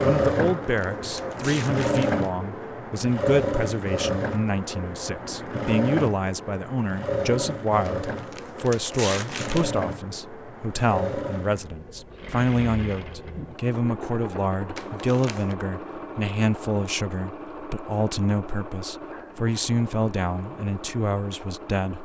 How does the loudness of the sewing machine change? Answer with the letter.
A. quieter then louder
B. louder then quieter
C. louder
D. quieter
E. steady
D.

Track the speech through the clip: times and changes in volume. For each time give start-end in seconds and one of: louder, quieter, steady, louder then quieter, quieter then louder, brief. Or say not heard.
0.0-21.9 steady.